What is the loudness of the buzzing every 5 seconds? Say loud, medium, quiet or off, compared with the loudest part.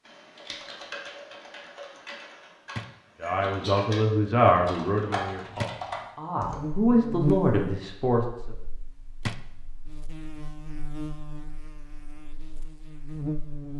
off, loud, medium.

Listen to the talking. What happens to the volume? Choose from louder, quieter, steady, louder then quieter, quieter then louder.
quieter then louder.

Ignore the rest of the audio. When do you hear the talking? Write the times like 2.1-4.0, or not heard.
3.2-8.5.